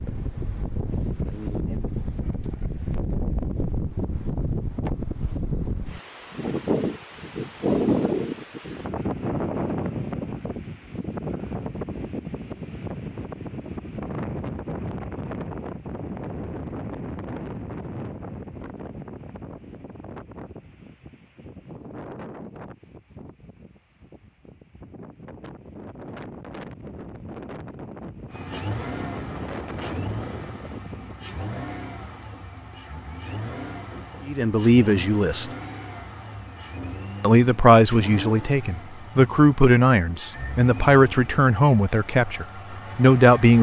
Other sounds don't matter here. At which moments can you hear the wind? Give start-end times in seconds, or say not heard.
0.0-31.4.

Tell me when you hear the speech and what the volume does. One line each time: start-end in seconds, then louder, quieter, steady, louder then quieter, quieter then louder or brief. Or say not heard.
34.2-35.5 brief
37.2-43.5 steady.